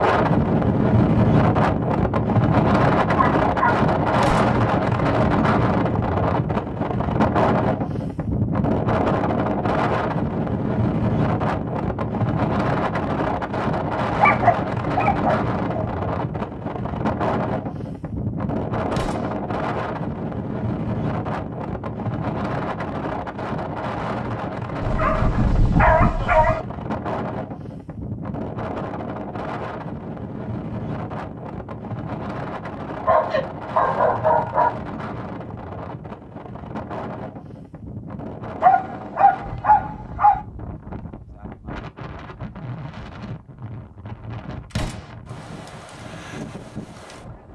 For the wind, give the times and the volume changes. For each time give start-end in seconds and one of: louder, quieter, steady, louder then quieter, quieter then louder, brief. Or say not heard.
0.0-47.5 quieter.